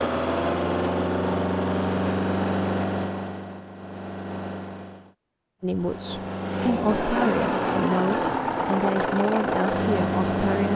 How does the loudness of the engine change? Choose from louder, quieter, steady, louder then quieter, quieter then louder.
quieter then louder.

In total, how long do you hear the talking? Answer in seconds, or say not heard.
5 s.